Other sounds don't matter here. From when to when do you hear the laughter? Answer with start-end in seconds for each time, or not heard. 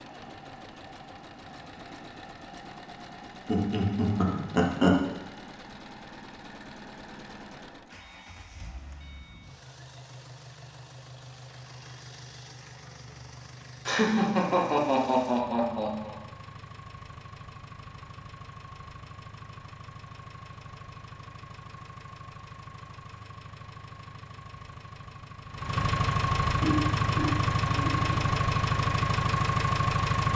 3.5-5.0, 13.8-16.1, 26.6-28.3.